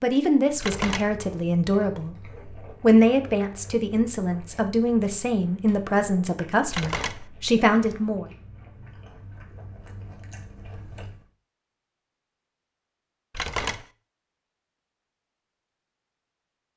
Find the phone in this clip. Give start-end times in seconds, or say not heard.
0.6-1.1, 6.7-7.2, 13.3-13.8.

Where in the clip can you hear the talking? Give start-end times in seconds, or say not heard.
0.0-2.1, 2.8-8.2.